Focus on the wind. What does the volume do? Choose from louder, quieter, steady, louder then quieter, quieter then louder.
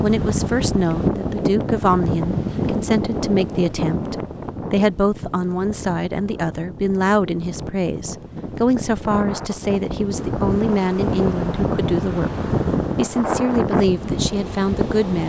quieter then louder.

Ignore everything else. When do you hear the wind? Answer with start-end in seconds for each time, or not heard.
0.0-15.2.